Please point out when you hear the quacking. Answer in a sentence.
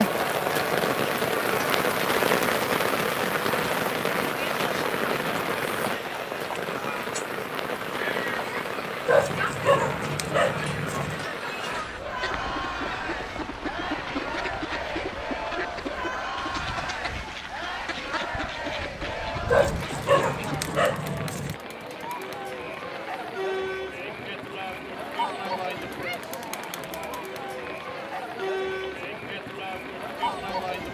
You can hear the quacking from 12.1 to 20.8 s.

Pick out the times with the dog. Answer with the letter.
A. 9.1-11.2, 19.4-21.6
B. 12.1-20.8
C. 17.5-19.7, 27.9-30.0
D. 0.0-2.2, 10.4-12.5
A.